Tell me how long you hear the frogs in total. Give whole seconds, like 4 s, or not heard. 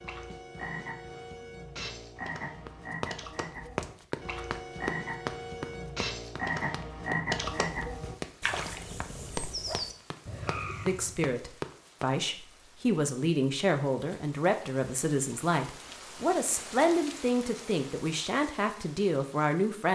11 s.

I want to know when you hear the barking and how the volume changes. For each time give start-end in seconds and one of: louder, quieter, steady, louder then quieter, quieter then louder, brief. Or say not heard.
not heard.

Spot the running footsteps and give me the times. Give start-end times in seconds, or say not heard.
2.6-12.1.